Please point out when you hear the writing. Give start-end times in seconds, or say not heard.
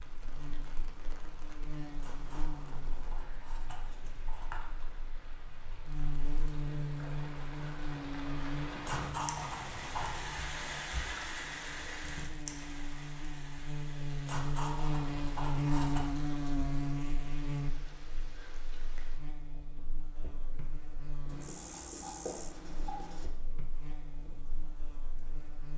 2.0-4.6, 8.8-10.4, 14.2-16.1, 21.2-23.3.